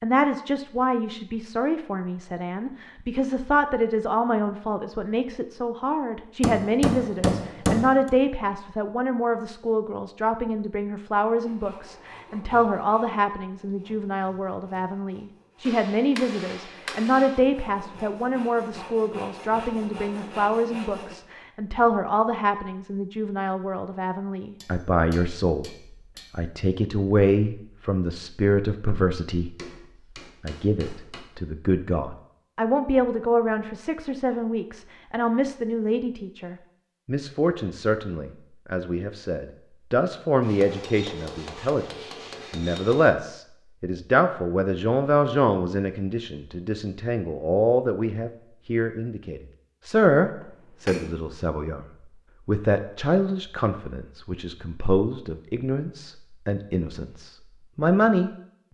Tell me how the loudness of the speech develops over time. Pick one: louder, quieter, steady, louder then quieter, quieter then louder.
steady.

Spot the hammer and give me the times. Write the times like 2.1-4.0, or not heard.
6.4-8.1, 15.6-17.4, 24.6-26.3, 29.6-31.2, 40.4-43.1, 50.4-51.3.